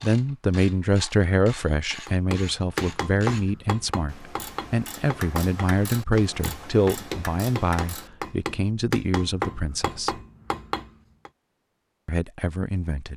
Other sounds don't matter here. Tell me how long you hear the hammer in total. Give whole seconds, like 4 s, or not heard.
9 s.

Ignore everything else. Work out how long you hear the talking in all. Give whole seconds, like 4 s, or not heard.
11 s.